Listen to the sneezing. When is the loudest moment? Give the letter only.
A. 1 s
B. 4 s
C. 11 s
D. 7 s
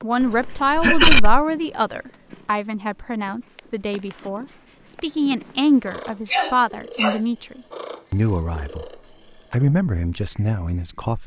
A.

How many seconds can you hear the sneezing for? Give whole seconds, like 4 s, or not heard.
2 s.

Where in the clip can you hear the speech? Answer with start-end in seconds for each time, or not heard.
0.0-11.2.